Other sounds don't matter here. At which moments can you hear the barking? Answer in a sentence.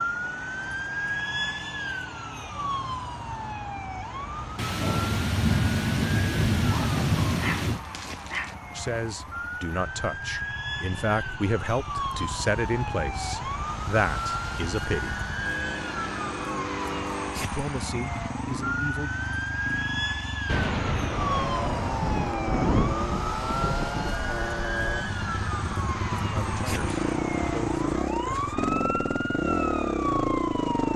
You can hear the barking from 6.7 to 8.6 s.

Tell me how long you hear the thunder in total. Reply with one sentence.
You can hear the thunder for 7 seconds altogether.